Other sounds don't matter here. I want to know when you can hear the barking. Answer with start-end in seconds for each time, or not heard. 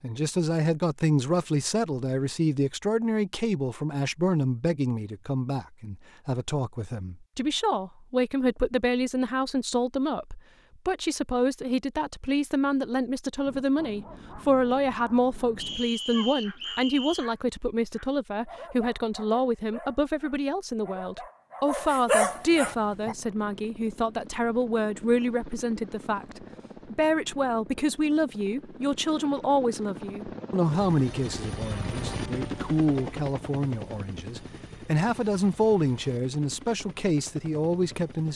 13.4-23.1.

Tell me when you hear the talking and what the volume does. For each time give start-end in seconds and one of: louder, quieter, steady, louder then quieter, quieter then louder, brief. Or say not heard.
0.0-38.3 steady.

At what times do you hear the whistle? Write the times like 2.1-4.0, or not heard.
15.6-17.2.